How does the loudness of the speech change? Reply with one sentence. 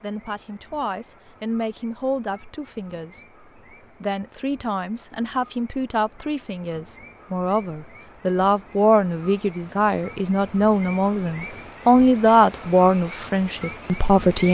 The loudness of the speech goes up.